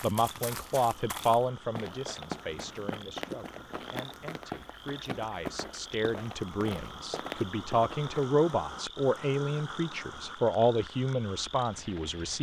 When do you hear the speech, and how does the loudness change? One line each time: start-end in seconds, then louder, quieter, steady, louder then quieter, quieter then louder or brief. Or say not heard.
0.0-12.3 quieter then louder.